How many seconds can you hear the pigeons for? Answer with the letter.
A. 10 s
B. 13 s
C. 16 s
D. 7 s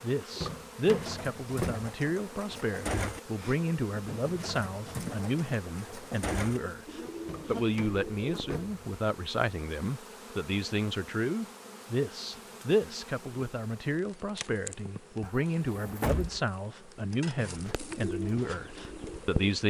A.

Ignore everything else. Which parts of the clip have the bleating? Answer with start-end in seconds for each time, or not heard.
not heard.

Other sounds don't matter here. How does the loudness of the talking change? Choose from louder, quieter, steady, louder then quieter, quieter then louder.
steady.